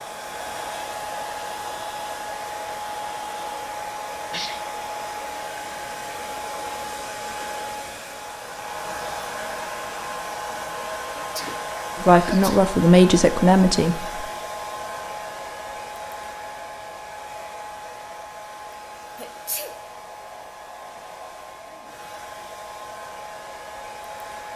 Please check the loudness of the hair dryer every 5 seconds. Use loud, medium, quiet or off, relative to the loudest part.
loud, loud, loud, medium, medium.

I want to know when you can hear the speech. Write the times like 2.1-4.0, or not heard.
12.0-14.2.